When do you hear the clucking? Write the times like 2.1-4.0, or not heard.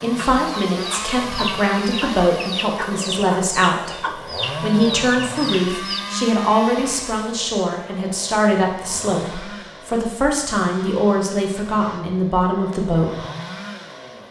0.1-6.0.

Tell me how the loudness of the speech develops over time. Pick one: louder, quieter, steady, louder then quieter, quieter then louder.
steady.